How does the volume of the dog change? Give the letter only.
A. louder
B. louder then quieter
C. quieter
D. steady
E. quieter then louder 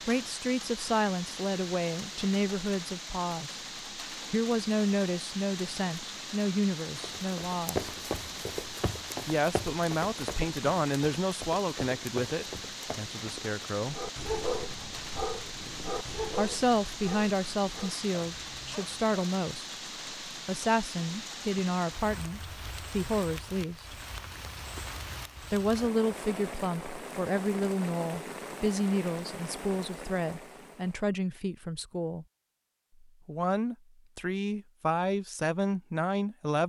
C.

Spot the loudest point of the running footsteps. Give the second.
8 s.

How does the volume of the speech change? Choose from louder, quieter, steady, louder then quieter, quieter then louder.
steady.